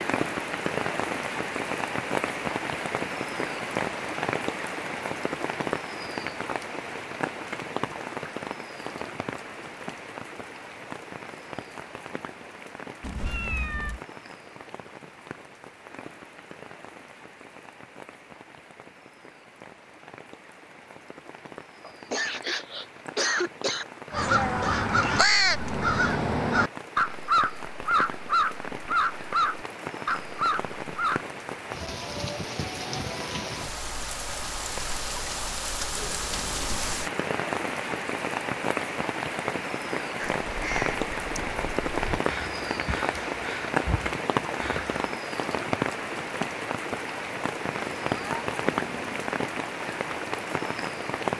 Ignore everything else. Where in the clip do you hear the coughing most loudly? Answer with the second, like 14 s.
23 s.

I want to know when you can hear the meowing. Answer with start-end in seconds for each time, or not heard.
13.0-14.0, 24.4-25.3, 47.8-49.4.